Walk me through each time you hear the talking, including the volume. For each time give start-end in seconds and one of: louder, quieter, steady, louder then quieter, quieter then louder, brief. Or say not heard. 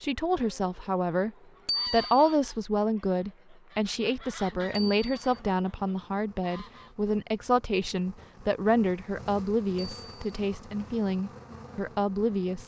0.0-1.3 brief
1.9-12.6 steady.